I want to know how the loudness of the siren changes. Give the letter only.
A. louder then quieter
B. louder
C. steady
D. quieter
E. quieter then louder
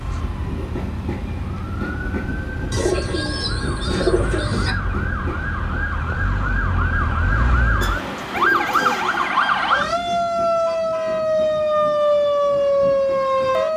B.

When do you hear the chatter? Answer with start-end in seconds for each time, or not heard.
not heard.